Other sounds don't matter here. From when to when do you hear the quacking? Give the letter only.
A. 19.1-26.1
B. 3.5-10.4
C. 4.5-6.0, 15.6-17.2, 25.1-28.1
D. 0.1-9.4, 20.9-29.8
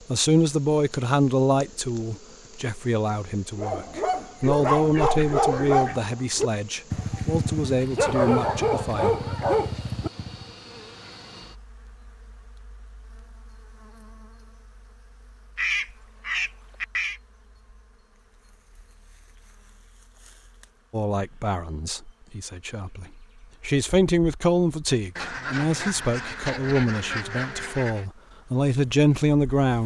C.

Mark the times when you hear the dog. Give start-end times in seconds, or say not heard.
3.5-10.4.